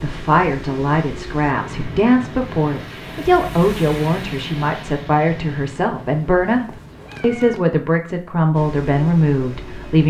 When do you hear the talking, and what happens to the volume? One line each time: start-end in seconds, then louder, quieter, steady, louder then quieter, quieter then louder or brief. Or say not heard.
0.0-10.0 steady.